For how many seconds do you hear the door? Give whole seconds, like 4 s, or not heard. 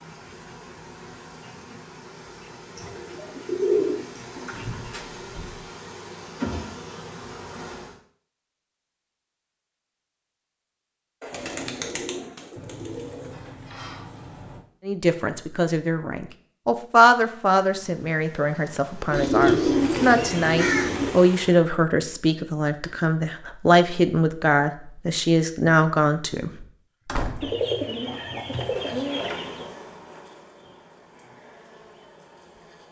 4 s.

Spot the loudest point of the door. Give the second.
27 s.